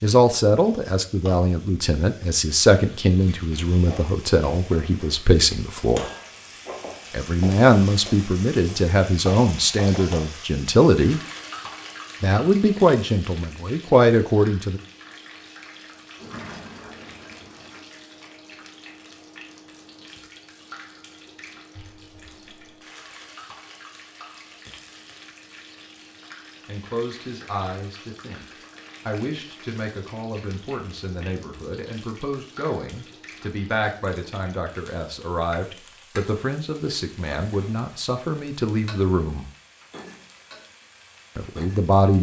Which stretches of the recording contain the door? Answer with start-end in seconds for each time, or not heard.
16.1-17.9, 21.8-22.8.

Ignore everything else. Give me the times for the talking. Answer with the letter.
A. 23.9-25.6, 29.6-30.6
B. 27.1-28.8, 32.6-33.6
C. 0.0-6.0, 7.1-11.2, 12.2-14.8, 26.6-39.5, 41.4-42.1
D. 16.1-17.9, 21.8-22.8
C.